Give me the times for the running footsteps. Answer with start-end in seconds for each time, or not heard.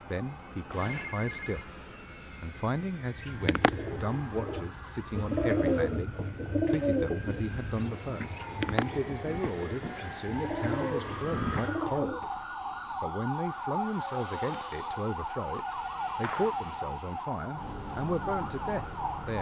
not heard.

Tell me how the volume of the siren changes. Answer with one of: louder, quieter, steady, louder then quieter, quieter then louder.
louder.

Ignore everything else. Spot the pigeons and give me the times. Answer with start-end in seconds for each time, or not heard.
3.1-12.3.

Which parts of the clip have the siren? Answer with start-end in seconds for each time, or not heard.
0.0-19.3.